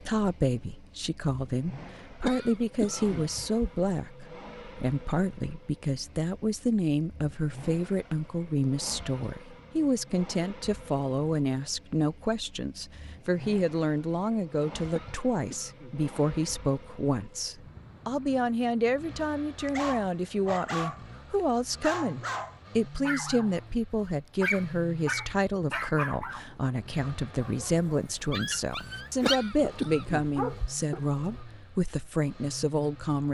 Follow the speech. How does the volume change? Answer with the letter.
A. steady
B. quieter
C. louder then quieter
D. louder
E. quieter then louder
A.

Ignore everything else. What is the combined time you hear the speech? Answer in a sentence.
You can hear the speech for 33 seconds altogether.